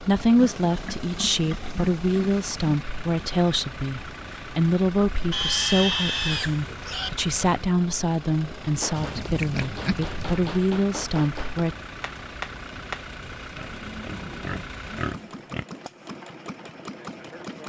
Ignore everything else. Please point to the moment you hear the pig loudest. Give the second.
6 s.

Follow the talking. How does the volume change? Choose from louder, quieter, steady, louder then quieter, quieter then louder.
steady.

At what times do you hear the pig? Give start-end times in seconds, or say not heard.
0.3-2.5, 5.3-7.1, 8.9-10.6, 13.6-15.7.